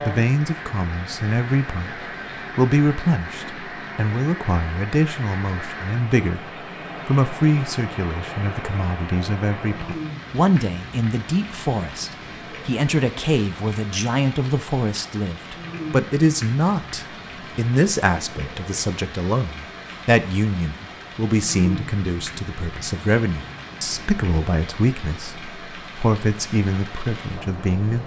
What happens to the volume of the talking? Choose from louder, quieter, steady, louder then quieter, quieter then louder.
steady.